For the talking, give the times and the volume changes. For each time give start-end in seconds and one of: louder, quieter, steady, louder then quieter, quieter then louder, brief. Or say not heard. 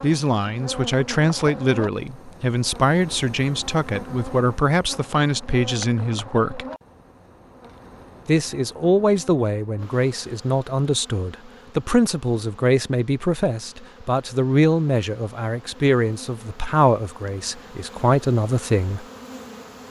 0.0-6.7 steady
8.2-19.1 steady.